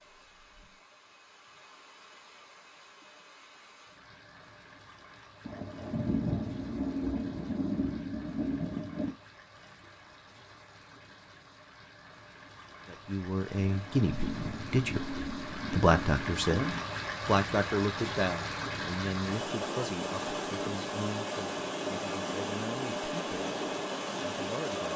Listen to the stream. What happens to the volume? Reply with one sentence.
The loudness of the stream goes up.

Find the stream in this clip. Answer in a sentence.
You can hear the stream from 0.0 to 24.9 s.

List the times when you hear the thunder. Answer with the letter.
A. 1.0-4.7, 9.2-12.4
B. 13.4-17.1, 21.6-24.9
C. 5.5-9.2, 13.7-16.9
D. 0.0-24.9
C.